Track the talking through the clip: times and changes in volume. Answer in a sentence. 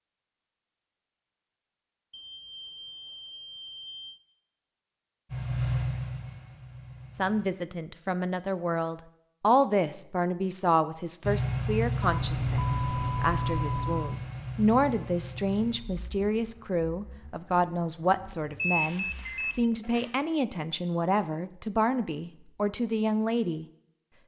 You can hear the talking from 7.2 to 23.6 s, at a steady volume.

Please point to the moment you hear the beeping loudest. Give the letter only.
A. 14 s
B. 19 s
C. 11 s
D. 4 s
B.